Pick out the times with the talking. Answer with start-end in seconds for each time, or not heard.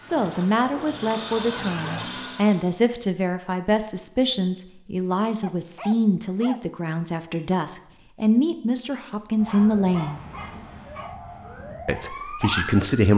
0.0-10.2, 11.8-13.1.